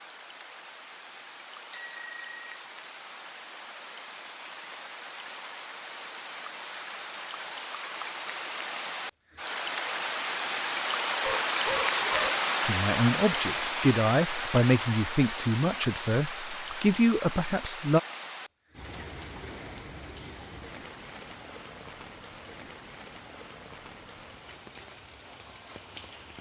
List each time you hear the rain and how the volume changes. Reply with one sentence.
You can hear the rain from 0.0 to 26.3 s, getting louder then quieter.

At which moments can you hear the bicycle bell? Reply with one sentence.
You can hear the bicycle bell from 1.7 to 2.5 s.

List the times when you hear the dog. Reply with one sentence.
You can hear the dog from 11.2 to 12.5 s.